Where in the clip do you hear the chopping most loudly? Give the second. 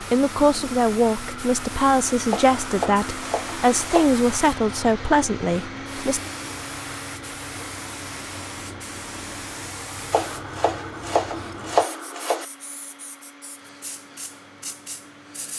12 s.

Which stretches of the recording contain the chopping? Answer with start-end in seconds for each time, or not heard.
2.3-4.2, 10.1-12.4.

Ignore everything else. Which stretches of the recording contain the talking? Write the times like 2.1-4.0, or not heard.
0.0-6.2.